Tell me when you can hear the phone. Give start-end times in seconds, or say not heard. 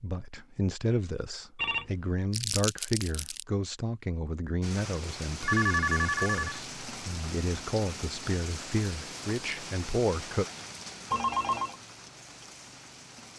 1.6-2.1, 5.4-6.6, 11.1-11.8.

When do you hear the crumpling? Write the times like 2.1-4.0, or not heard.
2.3-3.5.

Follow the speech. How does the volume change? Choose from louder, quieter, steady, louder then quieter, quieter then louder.
steady.